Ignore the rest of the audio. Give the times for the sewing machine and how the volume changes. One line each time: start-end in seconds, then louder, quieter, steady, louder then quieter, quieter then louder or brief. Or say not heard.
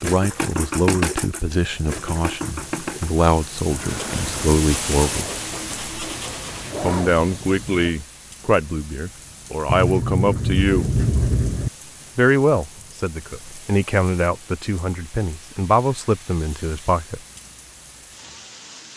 0.0-7.9 quieter then louder.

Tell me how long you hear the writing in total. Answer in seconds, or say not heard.
5 s.